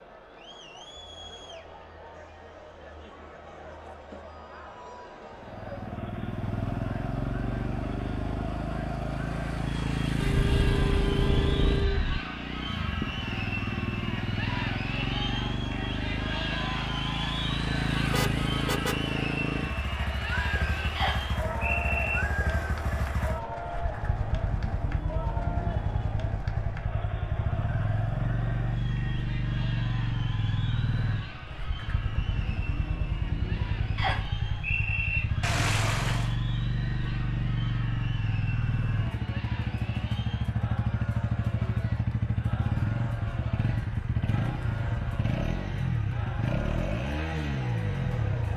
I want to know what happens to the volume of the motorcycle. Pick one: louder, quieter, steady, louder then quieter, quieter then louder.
steady.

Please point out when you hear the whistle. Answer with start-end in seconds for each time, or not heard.
20.9-22.2, 34.0-35.2.